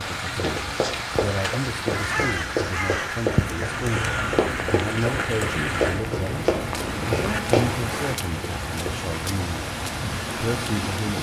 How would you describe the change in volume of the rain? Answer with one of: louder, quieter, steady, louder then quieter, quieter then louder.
steady.